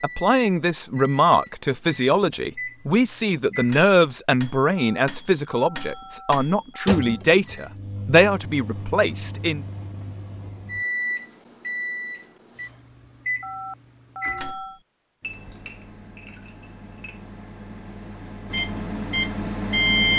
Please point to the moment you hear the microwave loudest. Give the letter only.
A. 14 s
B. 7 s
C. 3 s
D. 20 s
D.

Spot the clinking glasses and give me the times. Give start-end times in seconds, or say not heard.
15.2-17.2.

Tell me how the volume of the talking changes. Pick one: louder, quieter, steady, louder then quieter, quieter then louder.
steady.